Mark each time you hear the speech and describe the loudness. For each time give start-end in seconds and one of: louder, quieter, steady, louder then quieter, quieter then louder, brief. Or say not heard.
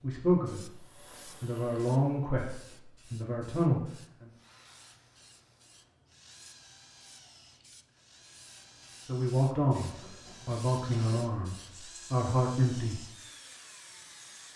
0.0-0.8 brief
1.4-4.3 brief
9.1-13.1 quieter then louder.